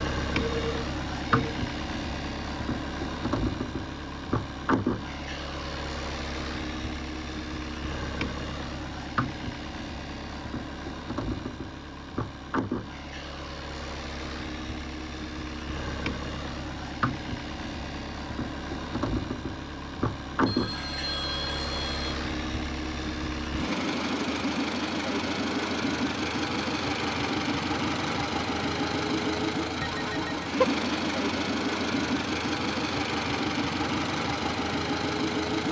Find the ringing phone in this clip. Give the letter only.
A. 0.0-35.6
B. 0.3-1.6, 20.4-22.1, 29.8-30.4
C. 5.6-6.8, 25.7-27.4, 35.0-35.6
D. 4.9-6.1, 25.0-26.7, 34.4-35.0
B.